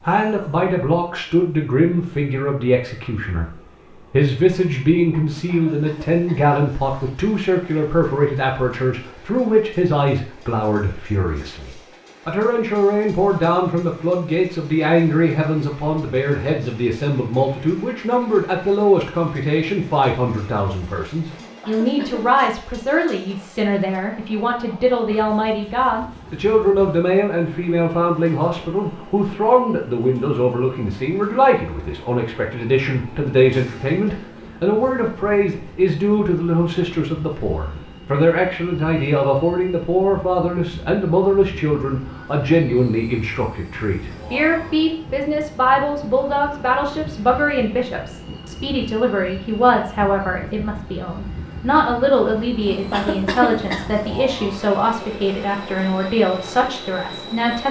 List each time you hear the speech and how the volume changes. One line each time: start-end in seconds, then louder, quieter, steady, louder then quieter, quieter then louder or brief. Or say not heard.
0.0-57.6 steady.